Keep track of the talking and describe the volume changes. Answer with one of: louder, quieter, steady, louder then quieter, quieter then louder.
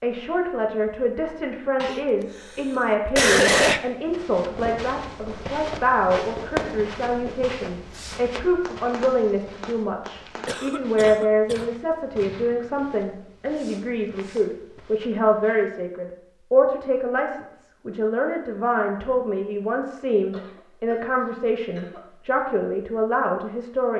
steady.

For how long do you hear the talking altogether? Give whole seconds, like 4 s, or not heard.
24 s.